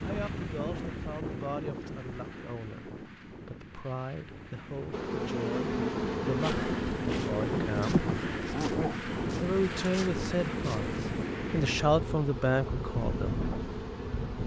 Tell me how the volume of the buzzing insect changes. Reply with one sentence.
The loudness of the buzzing insect goes down.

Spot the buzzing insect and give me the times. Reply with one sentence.
You can hear the buzzing insect from 4.9 to 14.4 s.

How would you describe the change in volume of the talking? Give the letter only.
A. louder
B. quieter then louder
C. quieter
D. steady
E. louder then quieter
A.